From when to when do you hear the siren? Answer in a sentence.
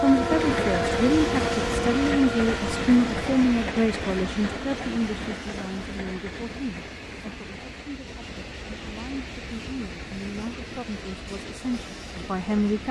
The siren can't be heard in this clip.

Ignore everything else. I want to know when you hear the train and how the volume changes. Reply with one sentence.
The train can be heard from 0.0 to 12.8 s, getting quieter.